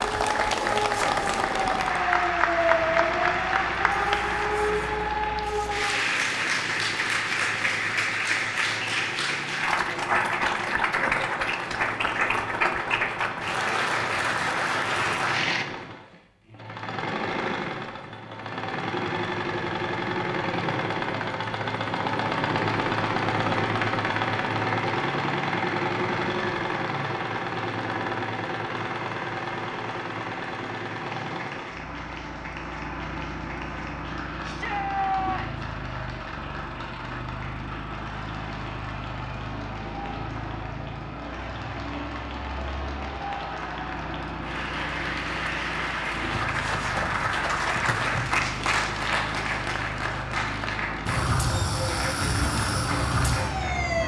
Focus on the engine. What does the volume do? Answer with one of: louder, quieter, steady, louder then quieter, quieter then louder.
louder then quieter.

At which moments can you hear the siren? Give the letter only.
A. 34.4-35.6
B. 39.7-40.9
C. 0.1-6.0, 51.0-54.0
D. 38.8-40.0
C.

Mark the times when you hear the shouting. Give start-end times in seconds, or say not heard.
34.4-35.6.